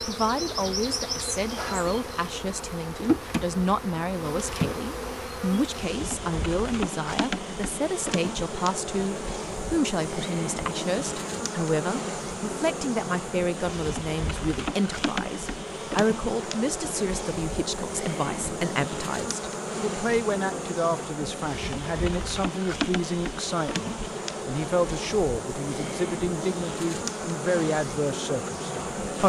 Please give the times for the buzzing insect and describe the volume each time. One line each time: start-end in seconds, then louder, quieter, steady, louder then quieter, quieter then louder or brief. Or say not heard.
0.0-29.2 steady.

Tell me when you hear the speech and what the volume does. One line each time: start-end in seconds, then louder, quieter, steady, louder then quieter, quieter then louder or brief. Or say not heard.
0.0-29.2 steady.